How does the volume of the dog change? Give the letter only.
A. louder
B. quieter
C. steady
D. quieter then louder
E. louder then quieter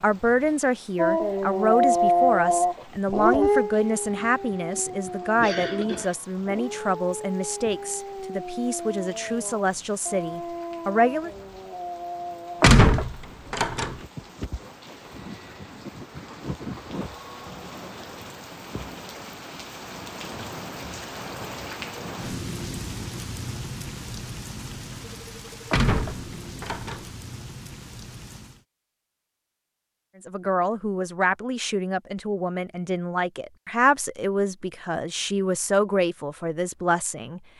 B.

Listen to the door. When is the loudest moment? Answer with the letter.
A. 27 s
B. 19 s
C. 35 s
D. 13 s
D.